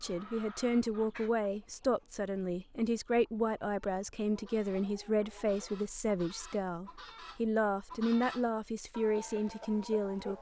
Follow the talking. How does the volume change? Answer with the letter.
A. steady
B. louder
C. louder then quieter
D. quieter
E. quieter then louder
A.